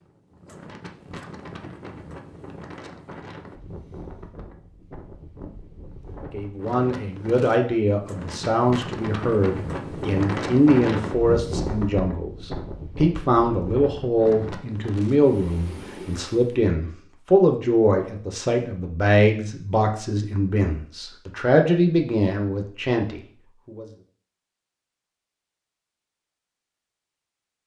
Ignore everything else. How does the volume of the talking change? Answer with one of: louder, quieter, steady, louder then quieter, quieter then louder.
steady.